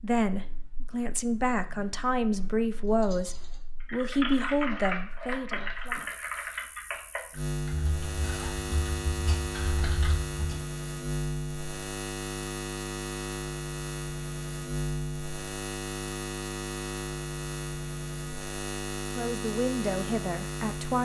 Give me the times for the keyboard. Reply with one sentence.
The keyboard can be heard from 3.0 to 10.6 s.